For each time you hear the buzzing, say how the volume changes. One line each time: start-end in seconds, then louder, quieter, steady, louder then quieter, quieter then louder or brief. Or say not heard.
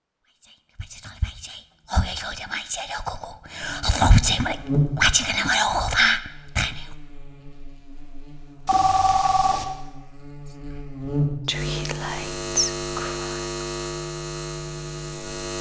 3.6-15.5 quieter then louder.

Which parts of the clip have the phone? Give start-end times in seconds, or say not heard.
8.7-9.7.